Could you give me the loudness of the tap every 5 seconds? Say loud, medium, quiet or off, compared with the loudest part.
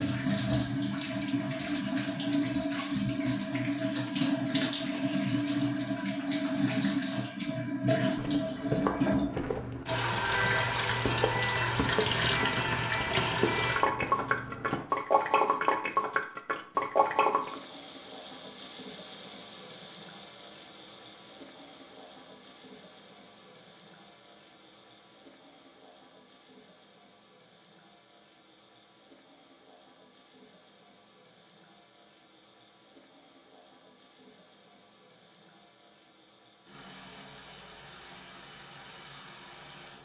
loud, loud, loud, loud, quiet, quiet, quiet, quiet.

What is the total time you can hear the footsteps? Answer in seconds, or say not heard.
7 s.